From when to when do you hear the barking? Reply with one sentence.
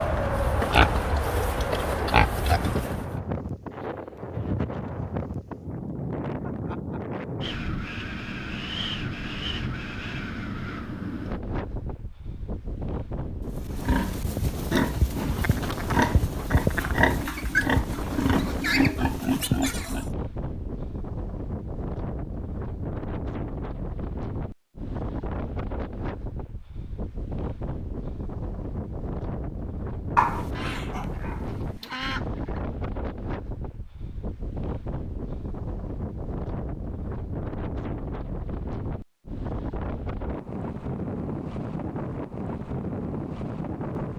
The barking can be heard from 30.1 to 31.9 s.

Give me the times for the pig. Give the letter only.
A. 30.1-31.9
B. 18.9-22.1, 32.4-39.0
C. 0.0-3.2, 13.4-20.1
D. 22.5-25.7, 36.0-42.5
C.